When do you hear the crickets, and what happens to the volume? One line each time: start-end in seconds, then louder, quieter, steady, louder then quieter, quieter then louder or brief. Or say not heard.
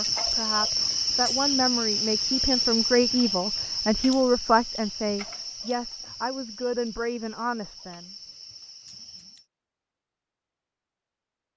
0.0-9.4 quieter.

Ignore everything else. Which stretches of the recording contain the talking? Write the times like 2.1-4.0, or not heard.
0.0-8.1.